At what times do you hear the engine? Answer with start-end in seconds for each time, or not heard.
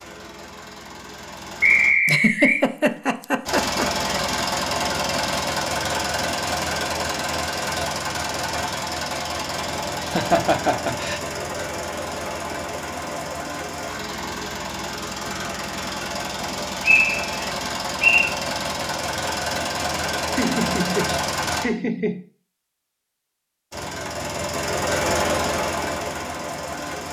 0.0-1.9, 3.5-21.6, 23.7-27.0.